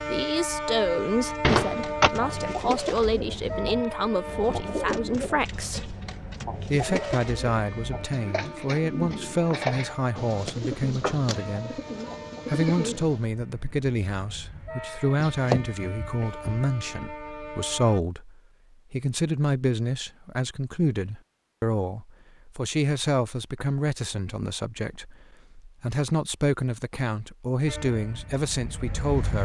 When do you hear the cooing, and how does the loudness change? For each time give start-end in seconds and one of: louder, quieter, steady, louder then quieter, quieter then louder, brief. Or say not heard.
1.2-13.2 steady.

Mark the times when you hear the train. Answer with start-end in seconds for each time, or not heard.
0.0-18.0, 27.6-29.4.